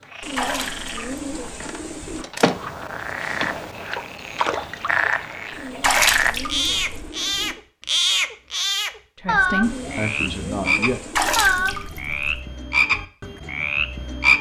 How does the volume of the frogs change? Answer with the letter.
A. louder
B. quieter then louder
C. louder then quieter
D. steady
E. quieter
A.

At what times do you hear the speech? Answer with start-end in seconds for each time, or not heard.
9.2-11.0.